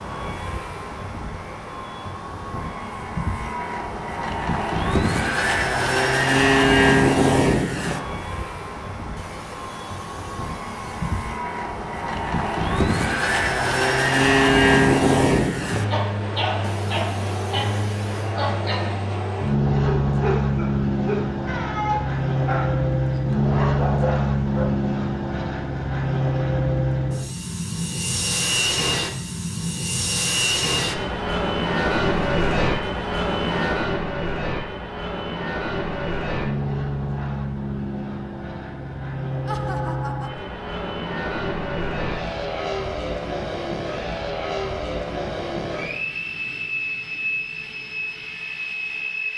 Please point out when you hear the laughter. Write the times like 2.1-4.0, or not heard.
9.2-11.4, 16.6-18.4, 39.5-40.5.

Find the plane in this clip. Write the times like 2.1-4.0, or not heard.
0.0-49.3.